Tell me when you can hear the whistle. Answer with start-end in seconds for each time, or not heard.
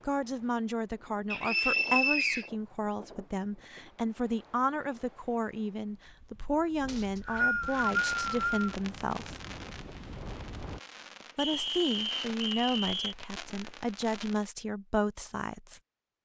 1.3-2.5, 6.8-8.7, 11.3-13.2.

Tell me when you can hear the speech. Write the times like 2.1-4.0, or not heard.
0.1-9.4, 11.3-15.8.